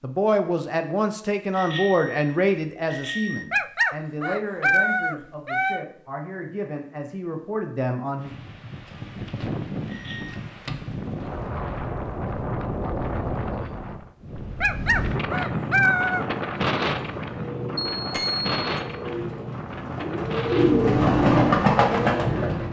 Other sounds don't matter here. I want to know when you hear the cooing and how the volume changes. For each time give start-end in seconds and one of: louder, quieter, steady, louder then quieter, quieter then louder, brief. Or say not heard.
16.1-22.6 louder.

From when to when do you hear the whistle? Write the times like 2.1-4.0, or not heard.
not heard.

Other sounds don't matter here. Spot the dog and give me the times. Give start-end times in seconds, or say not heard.
3.5-5.8, 14.6-16.2.